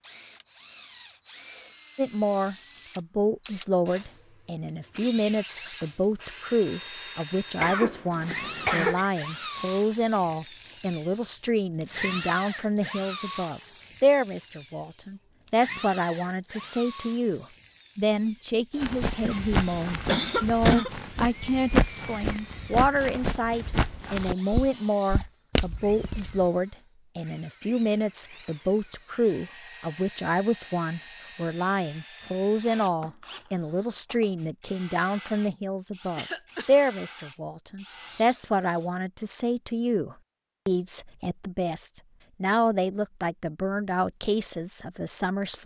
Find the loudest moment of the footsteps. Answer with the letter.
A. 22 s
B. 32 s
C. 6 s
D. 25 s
A.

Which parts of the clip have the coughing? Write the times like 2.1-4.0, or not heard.
7.6-9.1, 19.2-20.9, 36.1-36.7.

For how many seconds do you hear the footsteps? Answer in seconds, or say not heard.
8 s.